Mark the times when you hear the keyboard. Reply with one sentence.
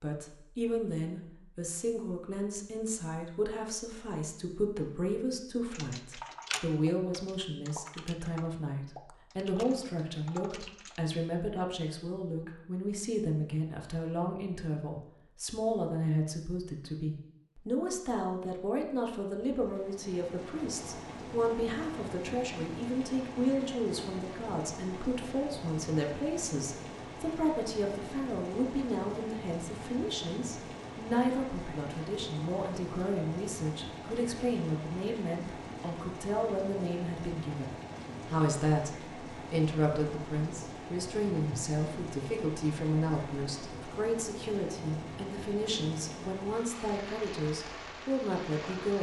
The keyboard can be heard from 5.7 to 11.0 s.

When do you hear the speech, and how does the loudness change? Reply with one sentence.
The speech can be heard from 0.0 to 48.9 s, at a steady volume.